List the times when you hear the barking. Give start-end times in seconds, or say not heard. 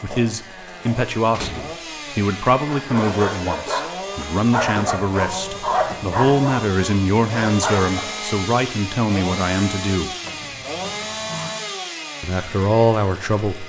2.5-8.1.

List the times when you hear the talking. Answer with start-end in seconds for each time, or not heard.
0.0-10.1, 12.2-13.6.